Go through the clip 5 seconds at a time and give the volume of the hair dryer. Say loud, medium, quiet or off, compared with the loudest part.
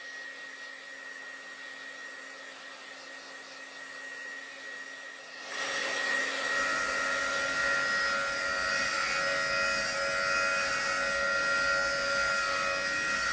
medium, loud, loud.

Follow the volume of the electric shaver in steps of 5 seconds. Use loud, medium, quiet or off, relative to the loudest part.
off, loud, loud.